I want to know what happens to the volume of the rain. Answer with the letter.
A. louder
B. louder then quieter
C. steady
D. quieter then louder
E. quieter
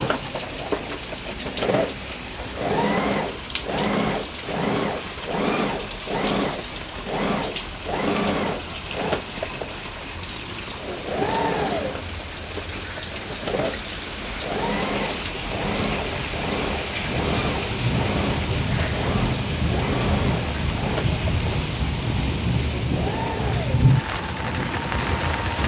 A.